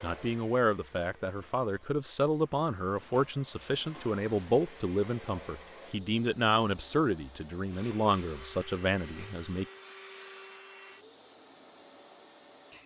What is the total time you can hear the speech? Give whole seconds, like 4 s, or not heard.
10 s.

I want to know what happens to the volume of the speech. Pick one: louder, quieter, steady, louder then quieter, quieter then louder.
steady.